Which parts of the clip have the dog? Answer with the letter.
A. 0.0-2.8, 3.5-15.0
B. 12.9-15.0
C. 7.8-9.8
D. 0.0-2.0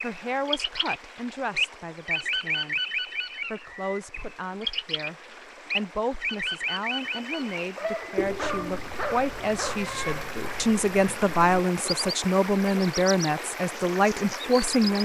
C.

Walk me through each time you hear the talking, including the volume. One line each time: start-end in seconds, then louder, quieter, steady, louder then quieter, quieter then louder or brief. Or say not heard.
0.0-2.8 brief
3.5-15.0 louder.